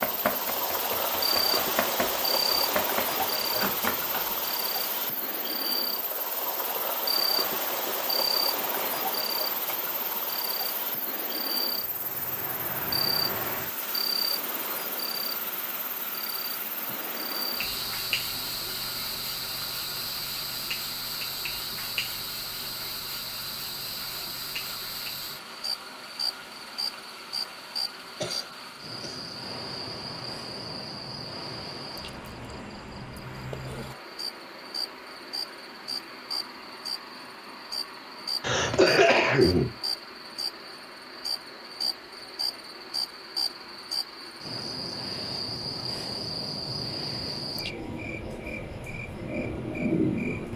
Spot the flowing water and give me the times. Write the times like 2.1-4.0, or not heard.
0.0-50.5.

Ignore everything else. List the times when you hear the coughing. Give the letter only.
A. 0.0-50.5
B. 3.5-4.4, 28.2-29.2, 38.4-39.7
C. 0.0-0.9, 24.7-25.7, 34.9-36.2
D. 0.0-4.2
B.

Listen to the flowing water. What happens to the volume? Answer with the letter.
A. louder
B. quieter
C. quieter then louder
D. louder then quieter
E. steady
B.